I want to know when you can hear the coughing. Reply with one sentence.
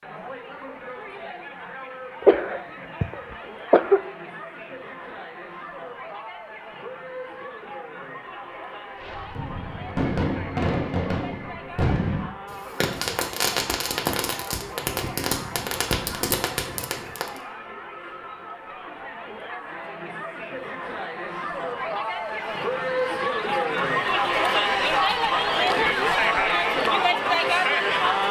You can hear the coughing from 2.2 to 4.0 s.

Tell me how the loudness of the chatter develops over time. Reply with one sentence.
The volume of the chatter goes up.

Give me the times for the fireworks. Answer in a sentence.
You can hear the fireworks from 9.0 to 17.4 s.